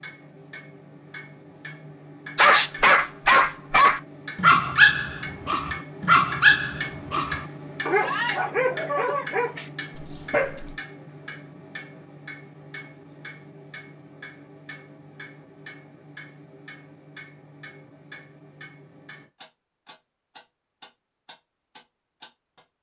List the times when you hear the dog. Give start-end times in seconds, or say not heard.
2.4-10.8.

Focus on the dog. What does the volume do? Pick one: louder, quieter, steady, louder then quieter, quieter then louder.
quieter.